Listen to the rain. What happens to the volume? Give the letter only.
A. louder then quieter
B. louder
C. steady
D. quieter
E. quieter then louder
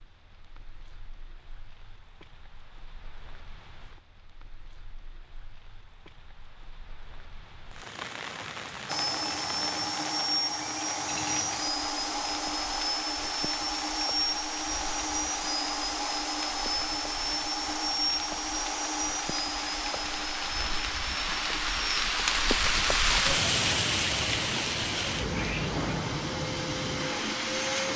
B.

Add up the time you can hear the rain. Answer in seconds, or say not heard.
28 s.